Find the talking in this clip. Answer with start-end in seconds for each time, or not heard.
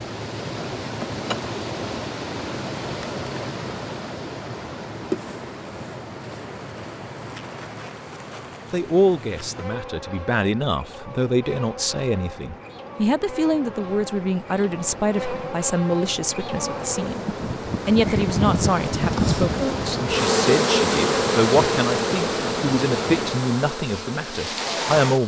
8.7-17.2, 17.9-25.2.